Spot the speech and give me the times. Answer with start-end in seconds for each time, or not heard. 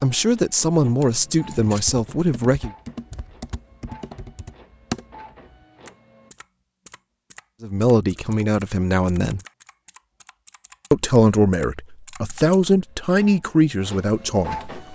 0.0-2.7, 7.6-9.4, 10.9-14.9.